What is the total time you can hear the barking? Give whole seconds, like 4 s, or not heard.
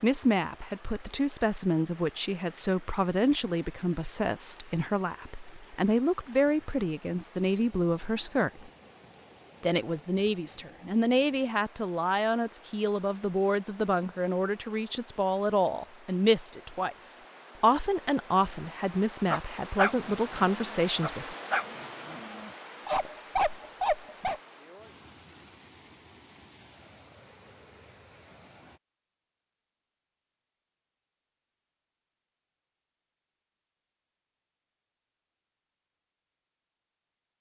5 s.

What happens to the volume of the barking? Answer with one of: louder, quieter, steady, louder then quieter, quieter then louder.
quieter then louder.